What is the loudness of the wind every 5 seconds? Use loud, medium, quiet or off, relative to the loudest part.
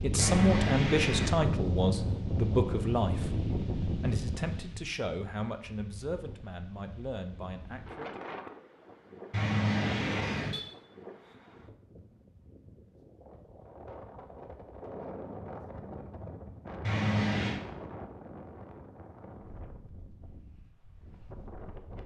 loud, quiet, quiet, medium, quiet.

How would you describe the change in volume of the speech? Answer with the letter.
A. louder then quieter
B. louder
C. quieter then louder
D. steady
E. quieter
E.